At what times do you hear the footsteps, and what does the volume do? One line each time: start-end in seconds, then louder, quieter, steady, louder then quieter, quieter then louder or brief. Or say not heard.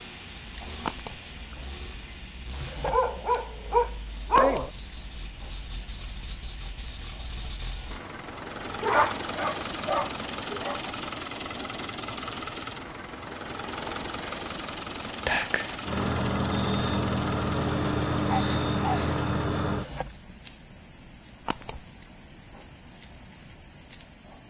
not heard.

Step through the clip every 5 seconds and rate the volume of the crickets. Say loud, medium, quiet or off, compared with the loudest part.
quiet, quiet, quiet, loud, quiet.